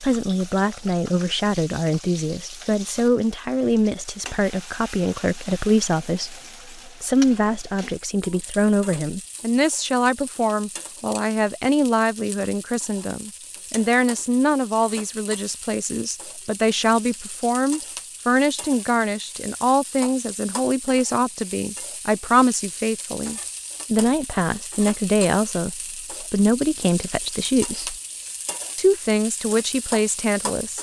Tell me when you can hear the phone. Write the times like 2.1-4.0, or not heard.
not heard.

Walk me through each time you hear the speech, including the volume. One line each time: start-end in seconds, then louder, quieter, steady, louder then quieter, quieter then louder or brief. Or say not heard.
0.0-27.9 steady
28.8-30.7 brief.